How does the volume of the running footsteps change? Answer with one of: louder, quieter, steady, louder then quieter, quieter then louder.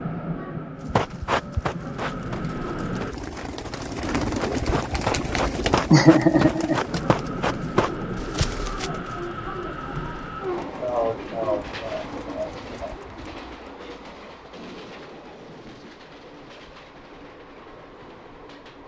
quieter then louder.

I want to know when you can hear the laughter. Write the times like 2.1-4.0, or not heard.
5.9-6.8, 10.8-12.9.